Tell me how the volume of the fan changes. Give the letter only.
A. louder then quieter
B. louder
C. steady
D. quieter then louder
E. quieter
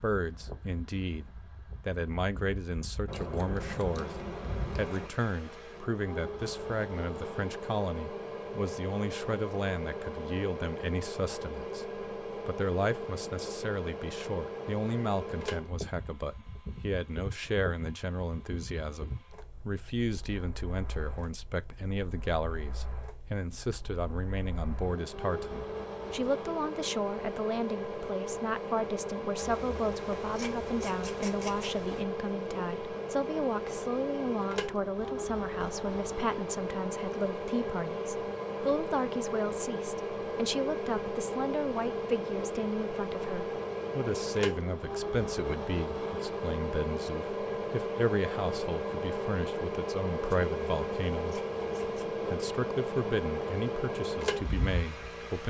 B.